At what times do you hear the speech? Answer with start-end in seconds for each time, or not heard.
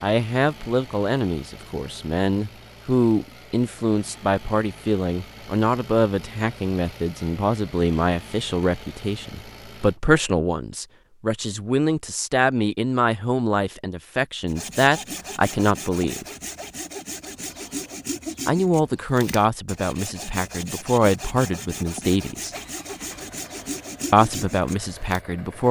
0.0-16.2, 18.4-22.5, 24.1-25.6.